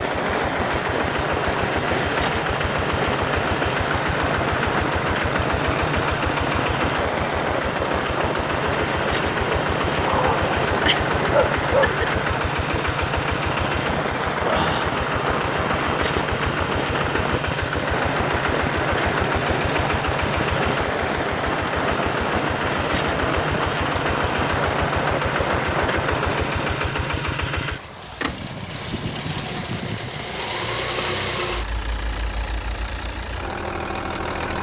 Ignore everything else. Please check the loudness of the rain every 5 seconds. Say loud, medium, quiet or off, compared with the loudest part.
loud, loud, loud, loud, loud, loud, off.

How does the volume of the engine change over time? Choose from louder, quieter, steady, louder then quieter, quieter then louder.
steady.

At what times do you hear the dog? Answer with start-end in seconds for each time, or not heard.
10.1-12.1.